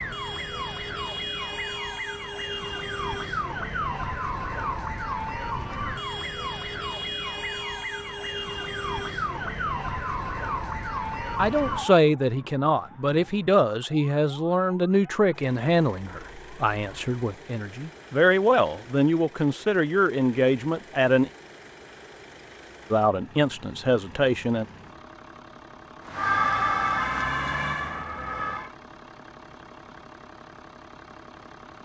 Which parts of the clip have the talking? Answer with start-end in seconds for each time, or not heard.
11.3-21.3, 22.9-24.6.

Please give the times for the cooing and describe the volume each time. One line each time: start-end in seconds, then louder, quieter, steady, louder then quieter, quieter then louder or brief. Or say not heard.
not heard.